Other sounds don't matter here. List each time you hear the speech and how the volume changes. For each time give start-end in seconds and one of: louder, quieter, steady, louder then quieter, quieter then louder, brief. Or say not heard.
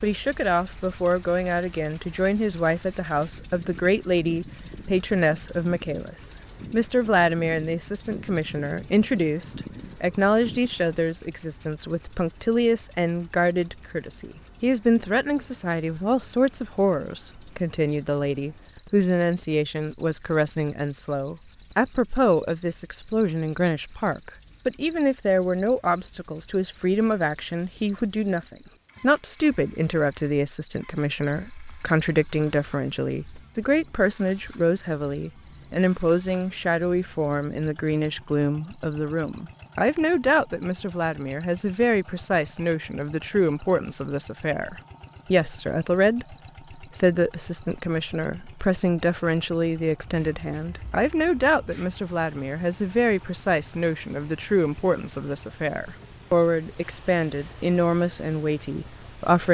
0.0-59.4 steady.